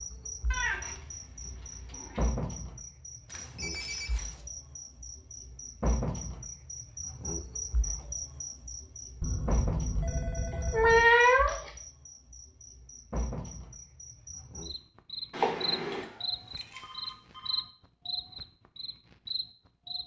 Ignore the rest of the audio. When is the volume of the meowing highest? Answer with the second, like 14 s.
11 s.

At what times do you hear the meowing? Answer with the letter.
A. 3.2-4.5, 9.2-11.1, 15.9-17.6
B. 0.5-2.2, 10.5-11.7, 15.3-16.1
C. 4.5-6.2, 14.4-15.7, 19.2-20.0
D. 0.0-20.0
B.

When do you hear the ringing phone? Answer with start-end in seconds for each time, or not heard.
3.2-4.5, 9.2-11.1, 15.9-17.6.